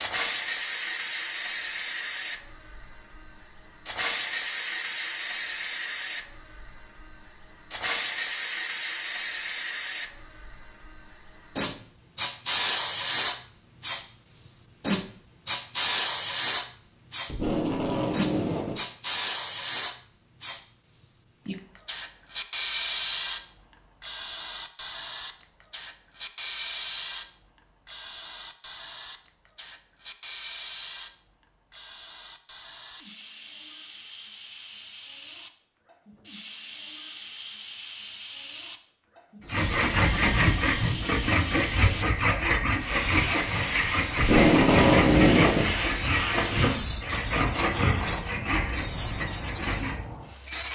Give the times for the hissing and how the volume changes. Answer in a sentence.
The hissing can be heard from 0.0 to 50.6 s, getting quieter then louder.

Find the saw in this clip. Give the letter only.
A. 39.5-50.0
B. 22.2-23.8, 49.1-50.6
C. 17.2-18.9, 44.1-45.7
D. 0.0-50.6
A.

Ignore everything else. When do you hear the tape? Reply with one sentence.
The tape can be heard from 17.2 to 18.9 s and from 44.1 to 45.7 s.